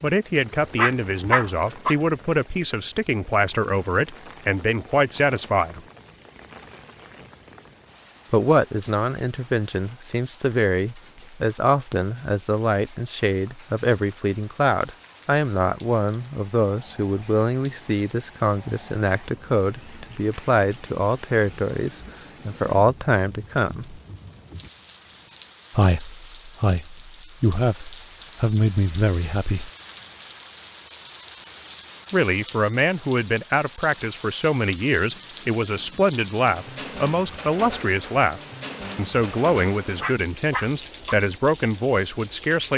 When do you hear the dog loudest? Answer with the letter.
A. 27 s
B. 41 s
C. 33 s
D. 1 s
D.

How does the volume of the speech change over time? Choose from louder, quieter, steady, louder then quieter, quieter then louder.
steady.